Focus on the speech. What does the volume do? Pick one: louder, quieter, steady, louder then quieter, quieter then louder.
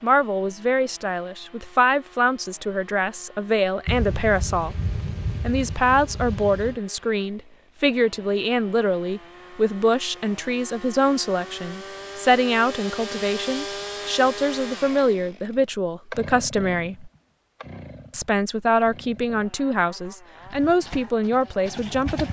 steady.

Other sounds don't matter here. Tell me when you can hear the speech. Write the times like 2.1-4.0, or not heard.
0.0-4.8, 5.4-17.1, 18.1-22.2.